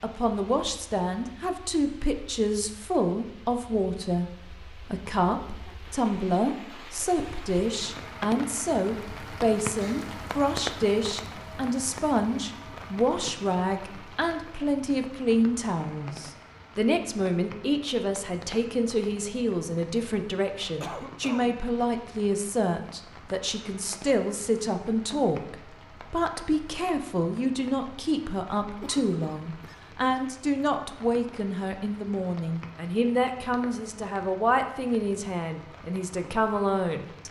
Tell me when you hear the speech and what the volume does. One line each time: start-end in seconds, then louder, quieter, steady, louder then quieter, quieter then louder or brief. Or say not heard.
0.0-37.2 steady.